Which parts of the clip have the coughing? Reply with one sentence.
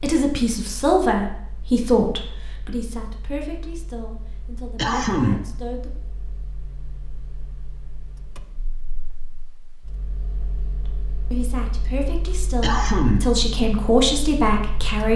The coughing can be heard from 4.8 to 5.5 s and from 12.6 to 13.4 s.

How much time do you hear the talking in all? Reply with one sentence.
You can hear the talking for 10 seconds altogether.